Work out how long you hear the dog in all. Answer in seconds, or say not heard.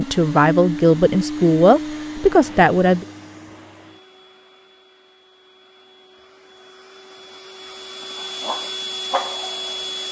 2 s.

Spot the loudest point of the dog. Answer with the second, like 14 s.
9 s.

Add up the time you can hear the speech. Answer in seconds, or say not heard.
3 s.